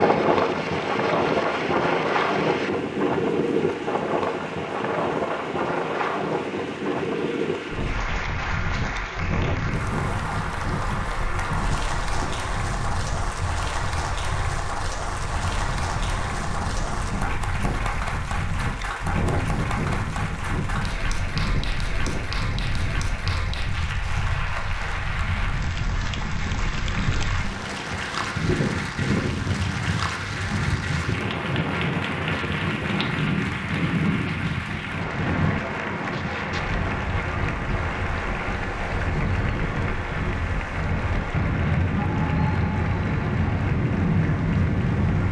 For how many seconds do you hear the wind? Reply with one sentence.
The wind can be heard for 45 seconds in total.